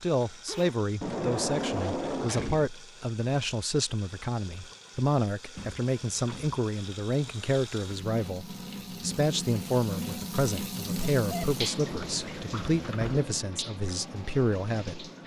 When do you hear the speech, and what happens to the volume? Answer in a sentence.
The speech can be heard from 0.0 to 15.1 s, at a steady volume.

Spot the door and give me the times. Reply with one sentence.
The door can be heard from 1.0 to 2.7 s, from 5.5 to 6.6 s and from 11.8 to 13.3 s.